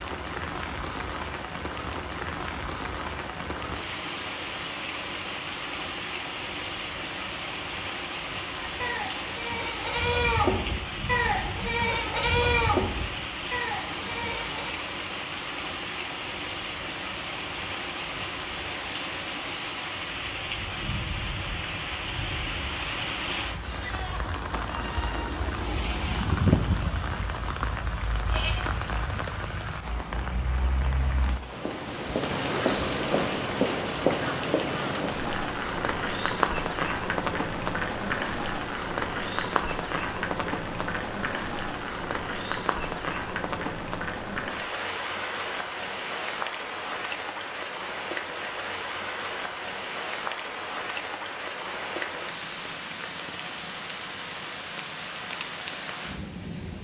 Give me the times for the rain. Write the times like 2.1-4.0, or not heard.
0.0-56.7.